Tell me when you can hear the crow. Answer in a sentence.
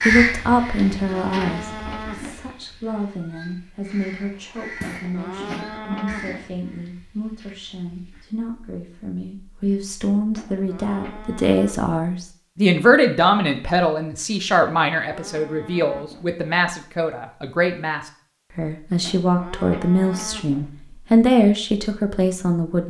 You can hear the crow from 0.0 to 8.3 s.